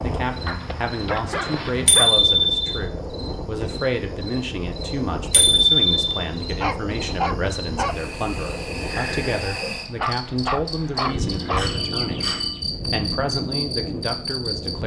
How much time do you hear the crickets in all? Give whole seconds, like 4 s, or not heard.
15 s.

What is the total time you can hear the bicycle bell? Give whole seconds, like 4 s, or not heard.
3 s.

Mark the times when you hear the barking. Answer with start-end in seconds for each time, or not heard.
0.5-2.2, 6.6-8.0, 9.9-11.8.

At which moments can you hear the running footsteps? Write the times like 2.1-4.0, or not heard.
not heard.